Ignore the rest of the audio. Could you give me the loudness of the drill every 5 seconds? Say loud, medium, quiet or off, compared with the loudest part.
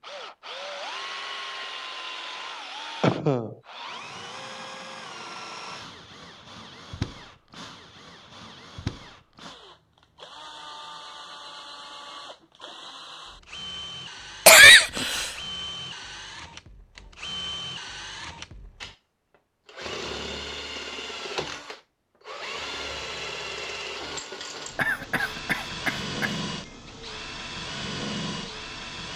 loud, medium, medium, loud, loud, loud.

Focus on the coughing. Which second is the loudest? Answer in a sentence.
The volume of the coughing peaks at 15 seconds.